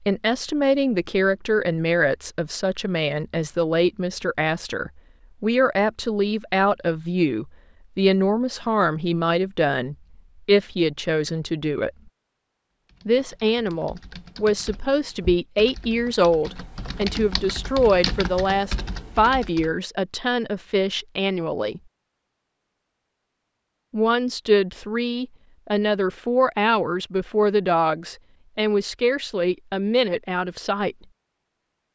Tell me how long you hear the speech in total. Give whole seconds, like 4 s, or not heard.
28 s.